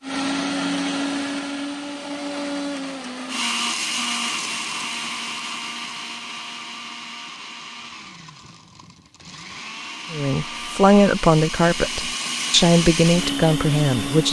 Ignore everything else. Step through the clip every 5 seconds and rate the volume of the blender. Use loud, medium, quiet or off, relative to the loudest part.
loud, medium, loud.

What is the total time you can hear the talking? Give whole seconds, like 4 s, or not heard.
4 s.